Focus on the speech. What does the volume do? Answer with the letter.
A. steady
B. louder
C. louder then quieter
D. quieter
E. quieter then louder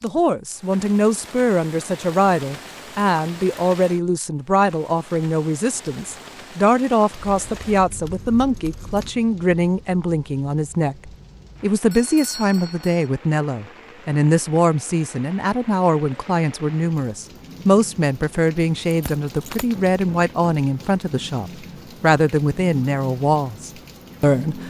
A.